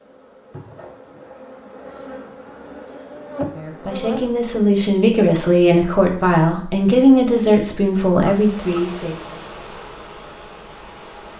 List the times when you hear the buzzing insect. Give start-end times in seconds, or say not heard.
0.0-4.3, 8.2-11.3.